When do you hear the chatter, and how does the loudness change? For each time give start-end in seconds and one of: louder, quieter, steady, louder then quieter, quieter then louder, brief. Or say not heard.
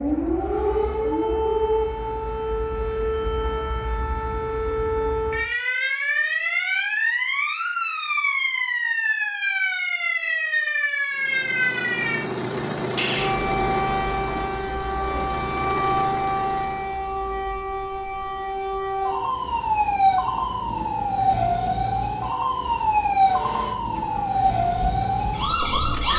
not heard.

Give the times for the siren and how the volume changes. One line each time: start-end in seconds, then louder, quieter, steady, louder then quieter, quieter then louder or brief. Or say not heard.
0.0-26.1 steady.